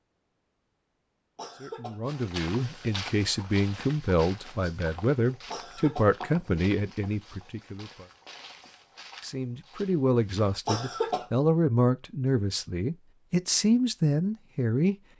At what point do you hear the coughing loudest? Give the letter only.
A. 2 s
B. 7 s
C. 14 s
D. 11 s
D.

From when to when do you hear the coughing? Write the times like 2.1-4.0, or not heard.
1.4-2.0, 5.5-6.1, 10.7-11.2.